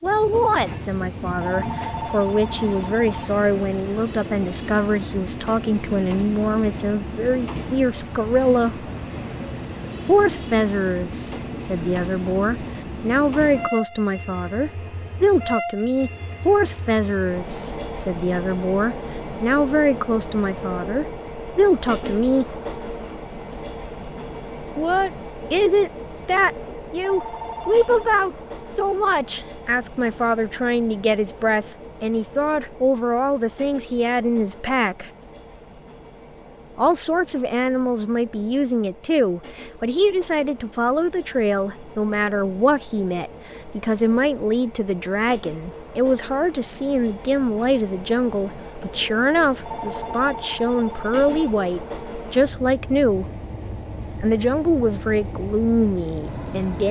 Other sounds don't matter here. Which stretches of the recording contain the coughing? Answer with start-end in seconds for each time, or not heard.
not heard.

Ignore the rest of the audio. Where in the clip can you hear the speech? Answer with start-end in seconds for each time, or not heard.
0.0-8.8, 10.1-22.4, 24.8-35.1, 36.8-53.2, 54.2-56.8.